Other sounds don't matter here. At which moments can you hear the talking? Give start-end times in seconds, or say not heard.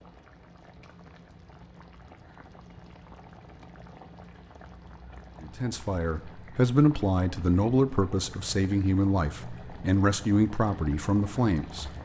5.4-11.9.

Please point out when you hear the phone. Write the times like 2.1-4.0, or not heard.
not heard.